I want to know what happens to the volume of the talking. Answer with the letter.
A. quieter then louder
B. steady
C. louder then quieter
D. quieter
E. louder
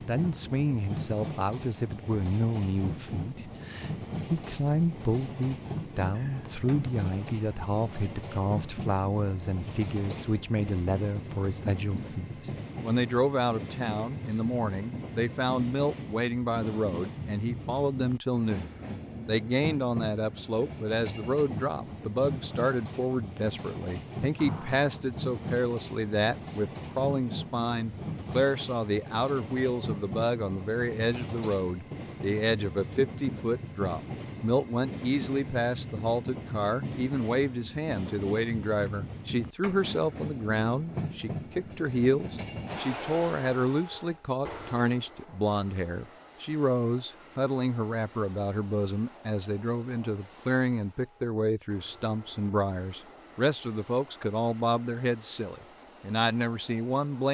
B.